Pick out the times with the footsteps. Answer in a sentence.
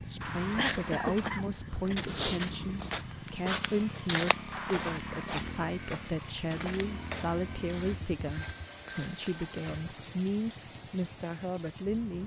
You can hear the footsteps from 0.5 to 9.9 s.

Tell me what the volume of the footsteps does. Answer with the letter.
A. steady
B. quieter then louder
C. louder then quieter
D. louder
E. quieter
E.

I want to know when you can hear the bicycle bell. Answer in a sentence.
The bicycle bell can be heard from 0.2 to 1.2 s, from 4.5 to 5.3 s and from 8.3 to 9.8 s.